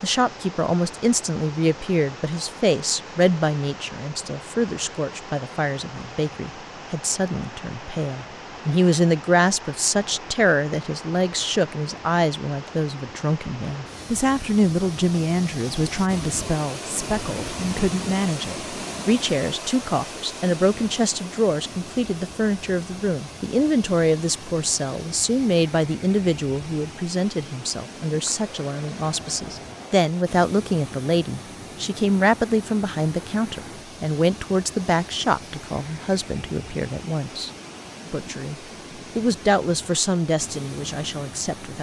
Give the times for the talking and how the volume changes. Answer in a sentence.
The talking can be heard from 0.0 to 38.5 s, at a steady volume; and briefly from 39.1 to 41.7 s.